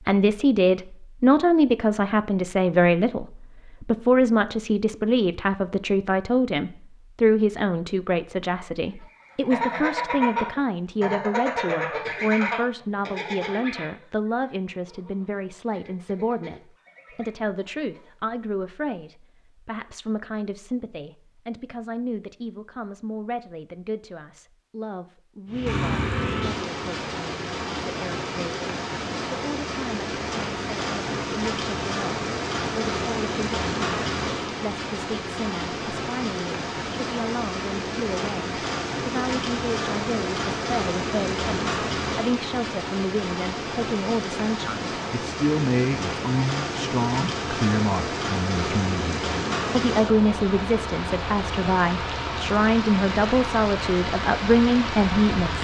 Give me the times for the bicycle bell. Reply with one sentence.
The bicycle bell can't be heard in this clip.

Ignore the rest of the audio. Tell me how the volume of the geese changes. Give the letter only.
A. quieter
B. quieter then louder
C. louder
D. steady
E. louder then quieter
A.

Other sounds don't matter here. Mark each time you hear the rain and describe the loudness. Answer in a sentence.
You can hear the rain from 25.5 to 55.6 s, at a steady volume.